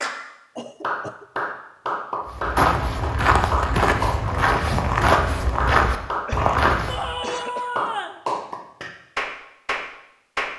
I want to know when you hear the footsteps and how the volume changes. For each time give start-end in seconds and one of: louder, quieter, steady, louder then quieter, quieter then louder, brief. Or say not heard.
2.2-7.2 steady.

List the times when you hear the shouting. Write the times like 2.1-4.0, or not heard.
6.8-8.2.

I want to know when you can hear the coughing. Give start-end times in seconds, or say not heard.
0.6-1.2, 6.2-7.9.